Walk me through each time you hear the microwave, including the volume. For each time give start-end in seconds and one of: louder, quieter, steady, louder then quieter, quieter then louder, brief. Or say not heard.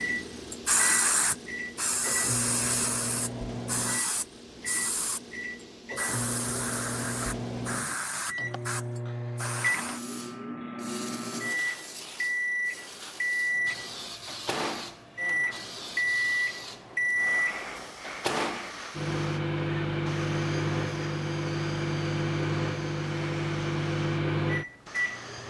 0.0-25.4 louder.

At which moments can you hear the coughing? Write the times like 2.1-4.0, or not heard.
not heard.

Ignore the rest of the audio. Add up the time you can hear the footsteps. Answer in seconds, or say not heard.
not heard.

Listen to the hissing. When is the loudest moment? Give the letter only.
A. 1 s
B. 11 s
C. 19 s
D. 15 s
A.